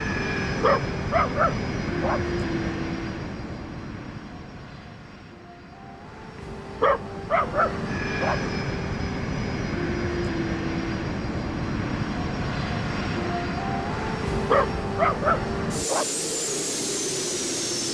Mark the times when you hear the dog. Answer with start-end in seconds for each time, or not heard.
0.6-2.2, 6.8-8.3, 14.4-16.1.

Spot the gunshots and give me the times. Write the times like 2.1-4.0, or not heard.
not heard.